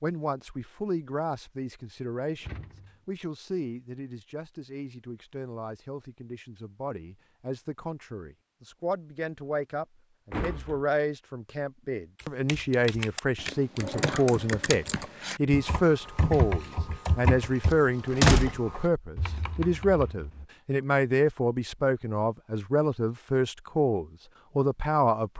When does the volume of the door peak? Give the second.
18 s.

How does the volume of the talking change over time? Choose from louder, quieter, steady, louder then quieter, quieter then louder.
louder.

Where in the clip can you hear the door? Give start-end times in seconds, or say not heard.
2.4-3.0, 10.3-10.8, 17.6-18.6.